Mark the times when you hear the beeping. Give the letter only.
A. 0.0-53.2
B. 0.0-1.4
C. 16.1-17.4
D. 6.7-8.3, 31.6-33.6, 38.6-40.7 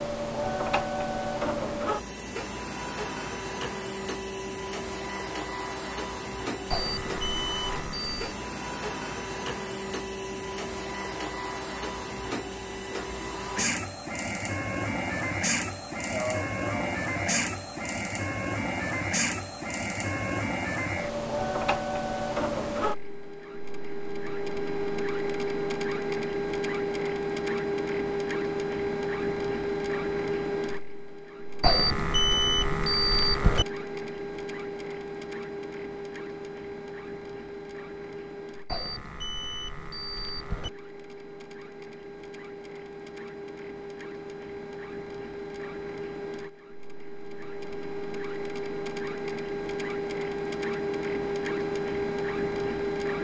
D.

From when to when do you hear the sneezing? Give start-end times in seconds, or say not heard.
16.1-17.4.